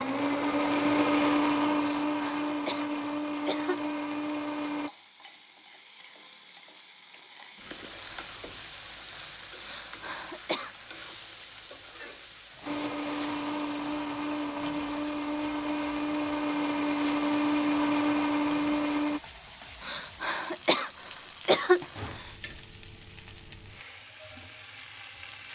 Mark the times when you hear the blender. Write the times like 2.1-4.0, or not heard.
0.0-4.9, 12.7-19.2.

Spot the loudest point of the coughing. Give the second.
22 s.